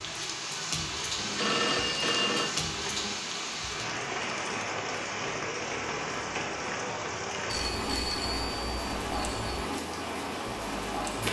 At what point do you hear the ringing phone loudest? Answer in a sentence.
The volume of the ringing phone peaks at 2 seconds.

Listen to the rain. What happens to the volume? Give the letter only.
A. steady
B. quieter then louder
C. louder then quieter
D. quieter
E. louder
A.